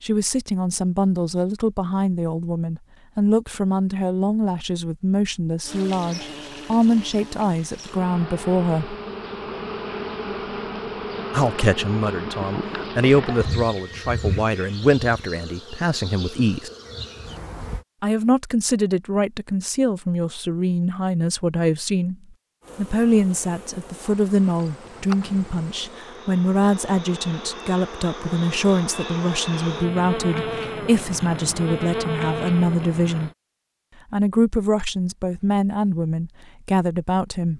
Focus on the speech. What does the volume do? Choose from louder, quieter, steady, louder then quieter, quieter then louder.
steady.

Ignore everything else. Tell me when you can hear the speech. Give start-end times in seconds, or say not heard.
0.0-8.9, 11.3-16.7, 18.0-22.1, 22.8-33.3, 34.1-37.5.